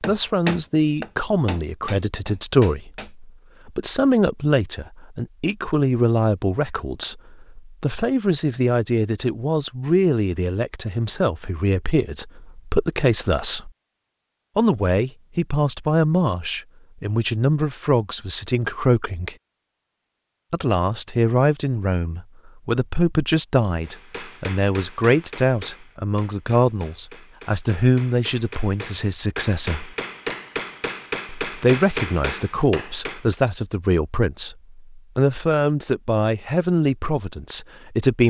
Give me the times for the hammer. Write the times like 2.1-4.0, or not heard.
0.0-3.1, 23.8-33.2.